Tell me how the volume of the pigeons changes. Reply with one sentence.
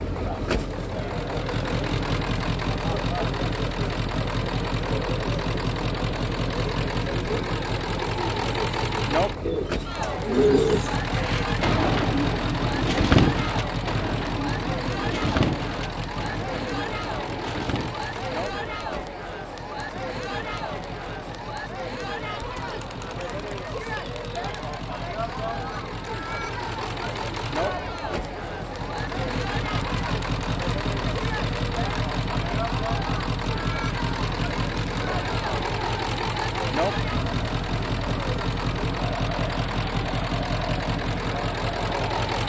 The loudness of the pigeons goes down.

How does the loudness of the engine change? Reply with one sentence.
The loudness of the engine goes down, then up.